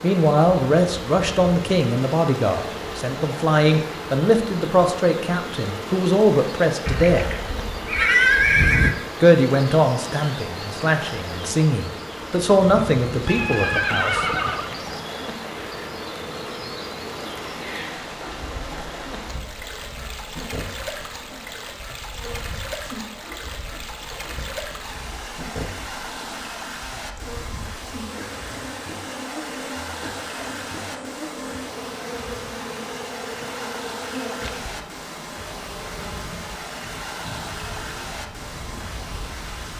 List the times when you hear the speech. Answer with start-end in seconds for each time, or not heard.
0.0-7.2, 9.2-14.2.